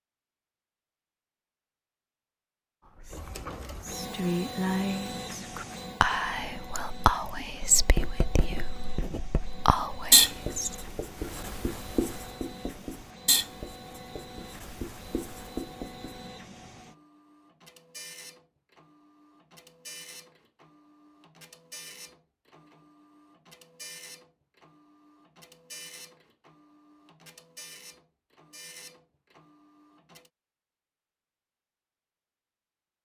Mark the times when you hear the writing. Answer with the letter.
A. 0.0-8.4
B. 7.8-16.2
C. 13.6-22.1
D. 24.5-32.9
B.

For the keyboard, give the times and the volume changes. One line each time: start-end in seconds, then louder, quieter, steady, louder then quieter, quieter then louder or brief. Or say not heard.
not heard.